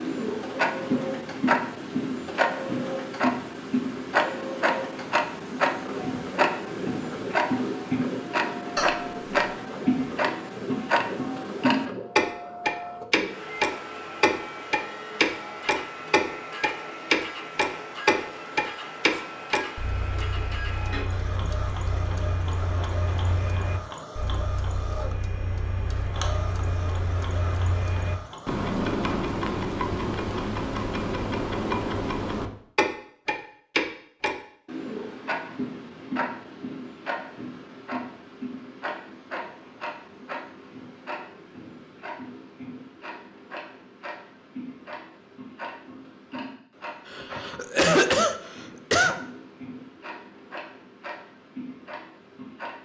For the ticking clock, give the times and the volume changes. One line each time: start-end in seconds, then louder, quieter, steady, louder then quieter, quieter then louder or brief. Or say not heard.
0.0-52.8 quieter.